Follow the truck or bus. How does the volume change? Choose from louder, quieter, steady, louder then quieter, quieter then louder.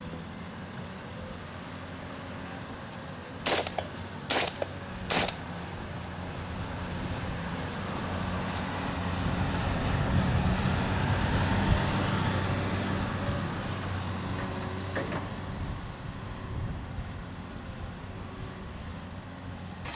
louder then quieter.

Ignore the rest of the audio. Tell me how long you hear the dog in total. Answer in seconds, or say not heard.
not heard.